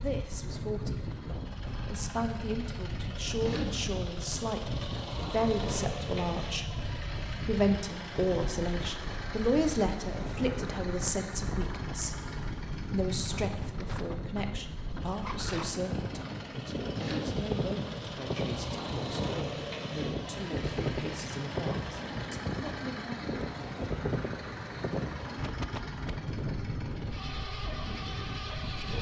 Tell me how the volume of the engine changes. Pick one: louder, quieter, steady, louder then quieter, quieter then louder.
steady.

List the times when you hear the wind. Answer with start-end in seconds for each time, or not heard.
0.0-28.9.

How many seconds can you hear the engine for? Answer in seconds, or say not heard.
29 s.